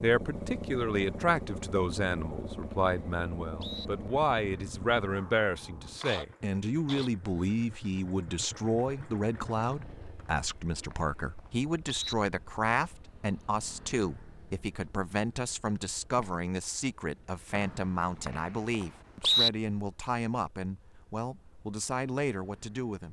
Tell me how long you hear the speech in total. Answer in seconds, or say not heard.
23 s.